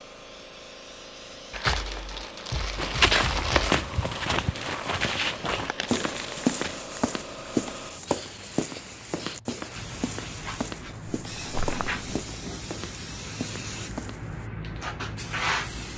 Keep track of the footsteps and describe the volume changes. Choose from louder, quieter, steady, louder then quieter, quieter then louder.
quieter.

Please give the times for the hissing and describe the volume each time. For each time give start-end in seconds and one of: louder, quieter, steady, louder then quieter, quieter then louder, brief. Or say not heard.
0.0-15.9 louder.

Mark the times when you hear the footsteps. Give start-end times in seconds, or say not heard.
2.8-14.4.